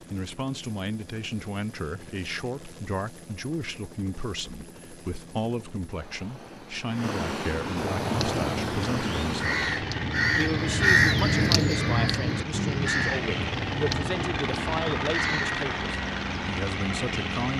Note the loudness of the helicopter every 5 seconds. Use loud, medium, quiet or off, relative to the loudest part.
quiet, loud, loud, loud.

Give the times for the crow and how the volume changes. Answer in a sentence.
The crow can be heard from 7.8 to 15.6 s, getting louder then quieter.